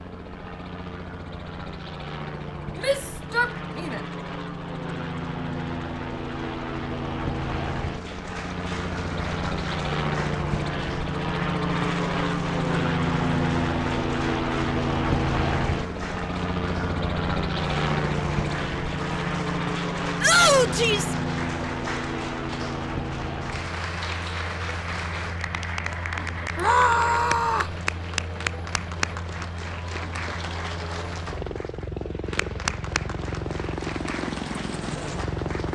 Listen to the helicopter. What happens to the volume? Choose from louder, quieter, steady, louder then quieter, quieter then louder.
louder then quieter.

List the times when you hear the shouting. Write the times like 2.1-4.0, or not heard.
2.8-4.0, 20.2-21.1, 26.6-27.8.